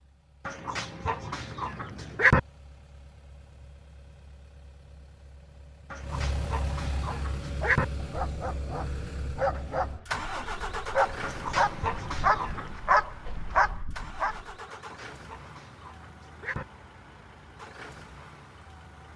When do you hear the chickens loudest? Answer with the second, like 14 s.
2 s.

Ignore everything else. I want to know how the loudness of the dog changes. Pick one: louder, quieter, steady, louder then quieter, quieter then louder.
louder.